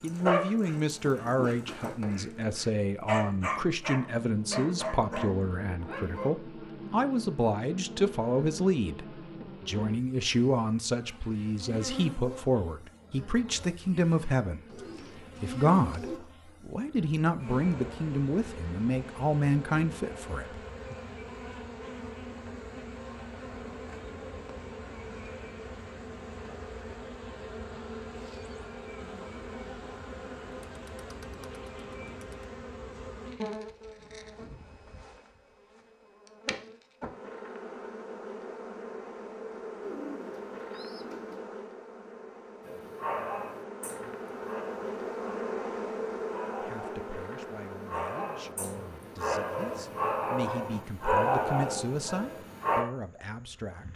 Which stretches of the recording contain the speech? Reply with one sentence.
The speech can be heard from 0.0 to 14.6 s, from 15.4 to 20.9 s and from 46.6 to 53.9 s.